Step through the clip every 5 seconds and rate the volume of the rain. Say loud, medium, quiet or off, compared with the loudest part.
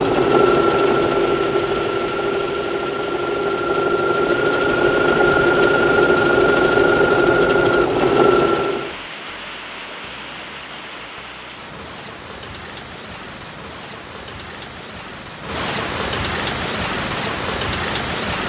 medium, medium, medium, loud.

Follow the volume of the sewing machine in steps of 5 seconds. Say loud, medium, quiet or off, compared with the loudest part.
loud, loud, off, off.